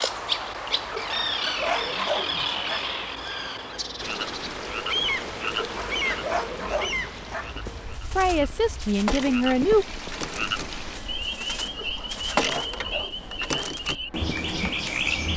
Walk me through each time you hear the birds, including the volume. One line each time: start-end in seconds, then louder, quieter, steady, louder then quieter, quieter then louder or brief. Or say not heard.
0.0-15.3 quieter then louder.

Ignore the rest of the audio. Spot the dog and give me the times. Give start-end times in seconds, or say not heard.
1.0-2.9, 5.6-7.5, 11.8-13.4.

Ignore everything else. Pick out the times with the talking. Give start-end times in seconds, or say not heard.
8.1-9.8.